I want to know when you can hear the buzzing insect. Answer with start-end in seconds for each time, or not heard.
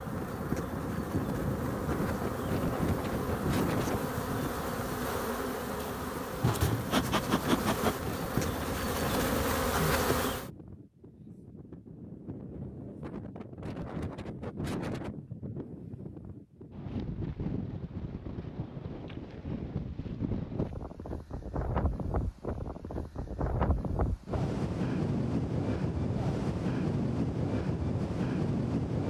0.0-10.5.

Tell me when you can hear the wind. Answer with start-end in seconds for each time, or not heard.
0.0-29.0.